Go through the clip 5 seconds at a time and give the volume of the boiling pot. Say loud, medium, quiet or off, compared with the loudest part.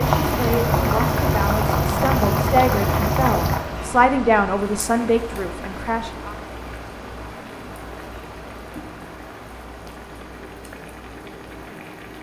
loud, quiet, quiet.